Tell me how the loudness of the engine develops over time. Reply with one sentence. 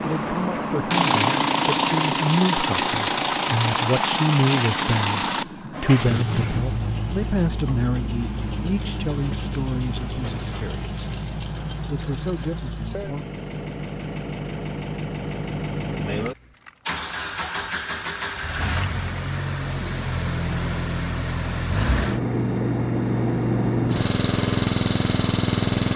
The volume of the engine goes down, then up.